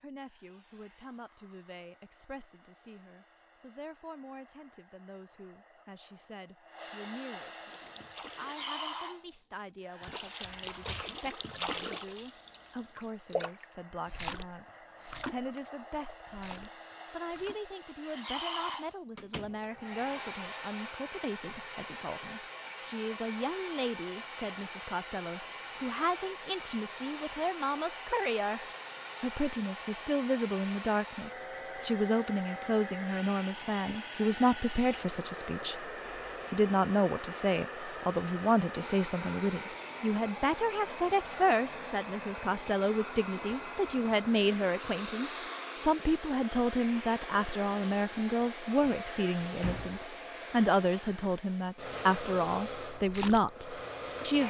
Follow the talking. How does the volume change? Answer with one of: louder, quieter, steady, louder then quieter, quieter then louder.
louder.